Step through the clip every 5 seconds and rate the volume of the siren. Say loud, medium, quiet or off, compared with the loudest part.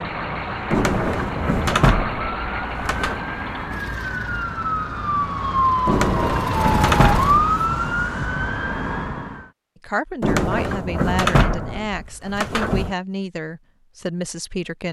medium, loud, off.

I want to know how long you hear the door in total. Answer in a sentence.
The door can be heard for 7 seconds in total.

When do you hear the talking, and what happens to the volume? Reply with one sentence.
You can hear the talking from 9.8 to 14.8 s, at a steady volume.